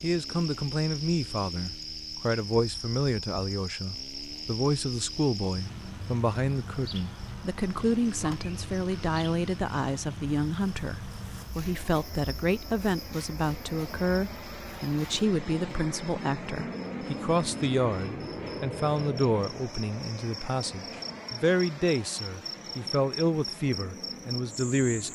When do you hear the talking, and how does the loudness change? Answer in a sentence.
The talking can be heard from 0.0 to 25.0 s, at a steady volume.